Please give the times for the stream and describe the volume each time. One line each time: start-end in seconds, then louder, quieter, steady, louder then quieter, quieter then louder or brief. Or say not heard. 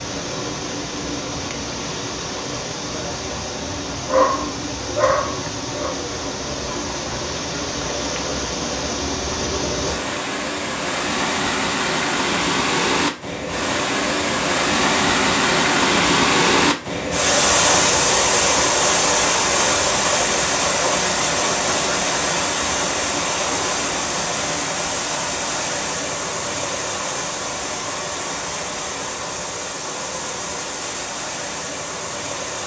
0.0-32.6 louder then quieter.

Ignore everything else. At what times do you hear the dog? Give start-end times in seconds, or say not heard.
4.0-6.0.